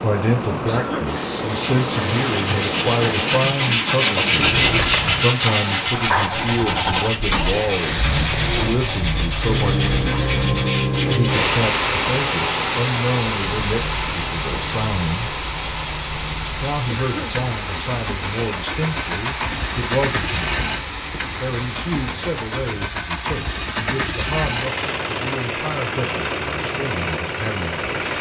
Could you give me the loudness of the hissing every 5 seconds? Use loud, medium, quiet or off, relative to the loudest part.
medium, loud, loud, medium, medium, quiet.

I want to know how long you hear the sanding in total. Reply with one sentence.
You can hear the sanding for 10 seconds altogether.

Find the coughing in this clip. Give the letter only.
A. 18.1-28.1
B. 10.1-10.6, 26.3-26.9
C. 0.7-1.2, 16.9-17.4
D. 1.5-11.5
C.